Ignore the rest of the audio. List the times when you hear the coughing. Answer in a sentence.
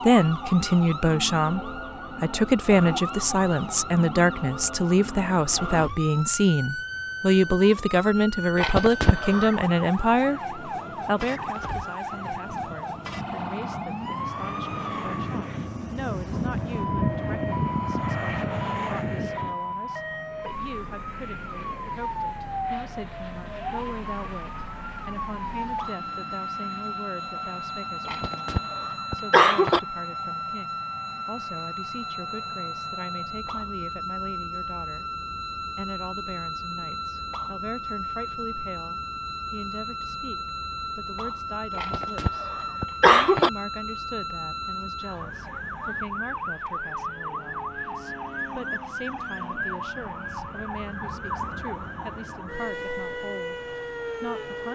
You can hear the coughing from 8.6 to 9.6 s, from 28.1 to 29.8 s and from 41.8 to 43.5 s.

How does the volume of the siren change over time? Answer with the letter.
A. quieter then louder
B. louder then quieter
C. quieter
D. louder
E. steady
E.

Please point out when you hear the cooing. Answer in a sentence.
You can't hear the cooing here.